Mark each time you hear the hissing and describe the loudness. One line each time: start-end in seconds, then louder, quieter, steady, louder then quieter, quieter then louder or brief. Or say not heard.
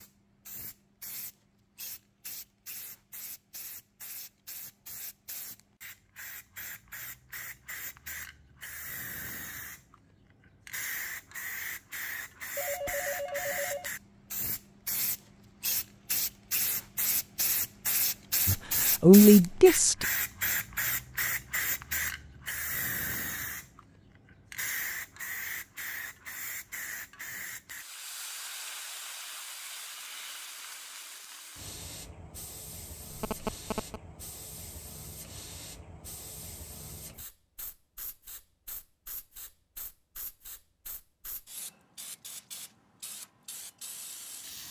0.0-44.6 louder then quieter.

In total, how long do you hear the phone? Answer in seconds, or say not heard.
2 s.